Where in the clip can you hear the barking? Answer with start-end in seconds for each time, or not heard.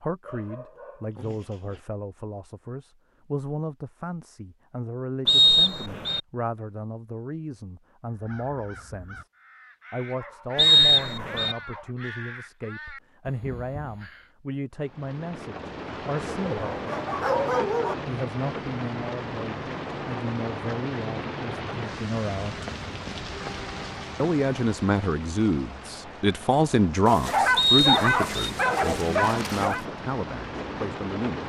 0.2-1.8, 10.2-11.9, 16.3-17.9, 27.1-29.9.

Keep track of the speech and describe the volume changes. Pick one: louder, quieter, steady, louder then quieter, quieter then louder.
louder.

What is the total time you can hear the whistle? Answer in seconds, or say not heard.
3 s.